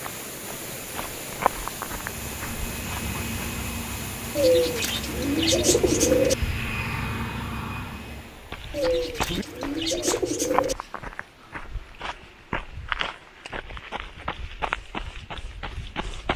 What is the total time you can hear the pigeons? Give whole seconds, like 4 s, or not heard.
4 s.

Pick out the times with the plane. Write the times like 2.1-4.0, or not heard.
1.9-8.4.